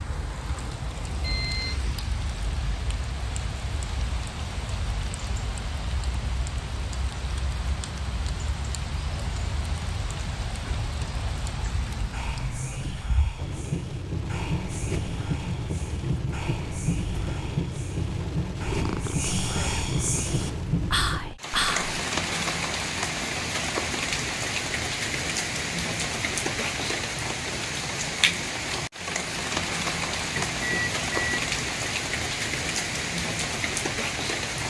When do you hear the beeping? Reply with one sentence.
The beeping can be heard from 1.2 to 1.8 s and from 30.4 to 31.4 s.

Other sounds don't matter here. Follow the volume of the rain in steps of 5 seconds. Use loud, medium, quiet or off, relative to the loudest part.
medium, medium, medium, loud, loud, loud, loud.